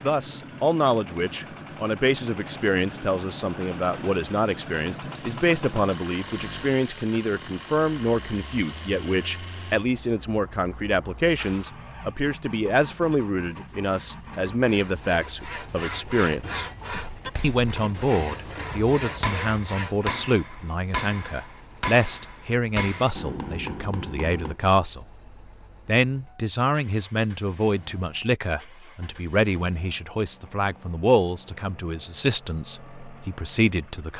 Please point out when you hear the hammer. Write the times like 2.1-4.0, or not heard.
17.1-24.6.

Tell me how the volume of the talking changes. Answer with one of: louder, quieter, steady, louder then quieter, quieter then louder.
steady.